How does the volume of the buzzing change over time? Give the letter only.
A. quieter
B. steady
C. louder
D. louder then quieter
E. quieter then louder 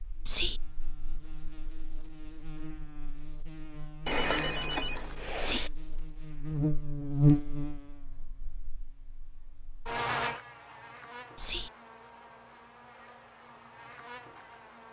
D.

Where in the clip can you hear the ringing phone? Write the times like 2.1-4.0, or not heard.
4.0-5.7.